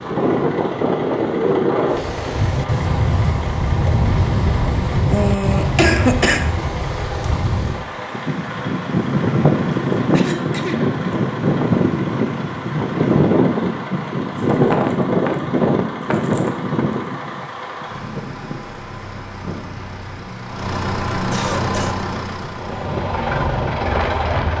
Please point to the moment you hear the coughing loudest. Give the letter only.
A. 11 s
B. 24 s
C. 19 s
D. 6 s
D.